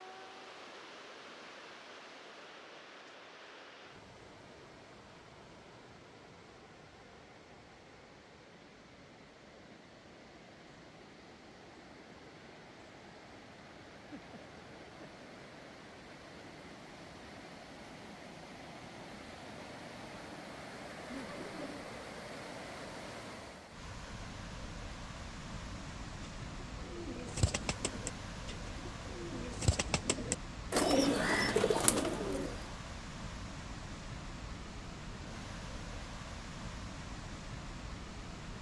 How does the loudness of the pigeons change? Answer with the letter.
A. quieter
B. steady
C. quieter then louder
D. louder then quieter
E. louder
C.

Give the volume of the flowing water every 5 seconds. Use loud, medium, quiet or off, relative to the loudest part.
medium, medium, medium, loud, loud, loud, loud, loud.